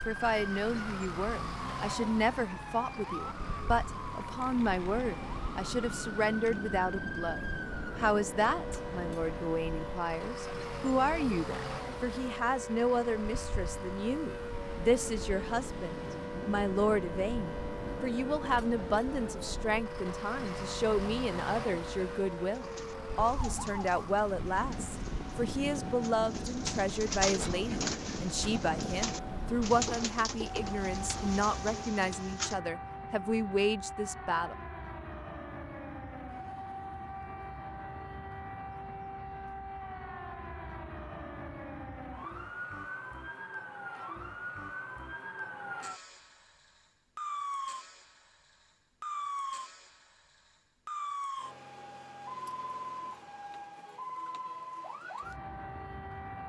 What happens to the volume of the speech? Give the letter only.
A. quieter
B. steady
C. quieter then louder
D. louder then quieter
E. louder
B.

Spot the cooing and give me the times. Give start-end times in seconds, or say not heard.
22.5-32.6.